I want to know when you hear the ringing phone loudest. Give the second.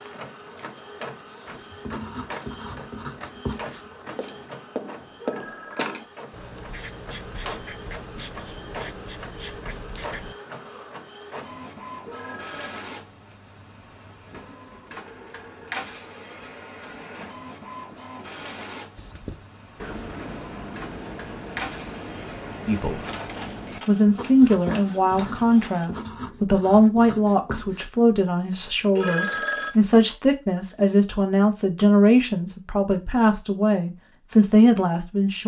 29 s.